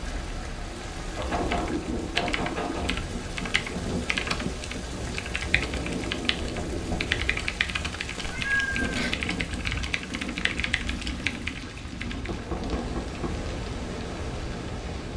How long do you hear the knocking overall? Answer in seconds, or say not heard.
4 s.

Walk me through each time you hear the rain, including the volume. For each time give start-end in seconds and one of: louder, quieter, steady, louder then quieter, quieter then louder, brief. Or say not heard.
0.0-15.1 steady.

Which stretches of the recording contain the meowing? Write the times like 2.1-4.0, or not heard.
8.2-9.2.